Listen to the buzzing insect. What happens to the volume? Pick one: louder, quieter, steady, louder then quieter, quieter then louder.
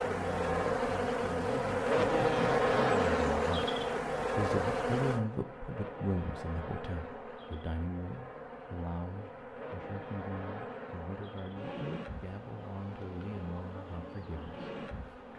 quieter.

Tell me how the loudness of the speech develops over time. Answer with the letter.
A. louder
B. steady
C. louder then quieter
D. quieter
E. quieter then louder
C.